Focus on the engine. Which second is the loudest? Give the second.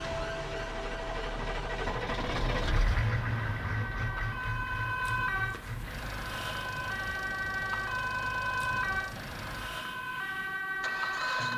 3 s.